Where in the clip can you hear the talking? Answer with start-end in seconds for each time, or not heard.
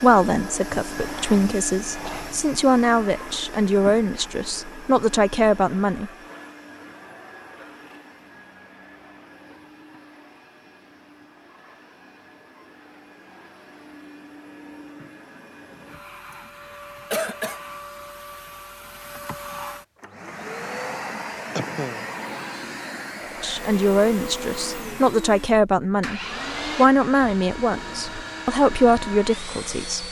0.0-6.1, 23.4-30.0.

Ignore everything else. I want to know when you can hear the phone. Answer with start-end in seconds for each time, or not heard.
not heard.